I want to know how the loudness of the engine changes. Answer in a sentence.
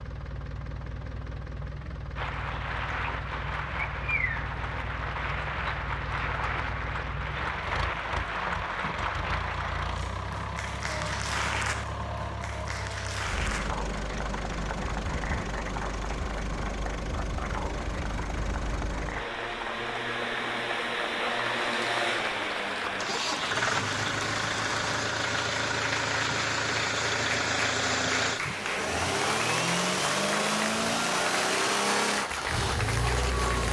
The loudness of the engine goes up.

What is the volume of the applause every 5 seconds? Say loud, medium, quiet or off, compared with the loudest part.
loud, loud, loud, medium, loud, loud, loud.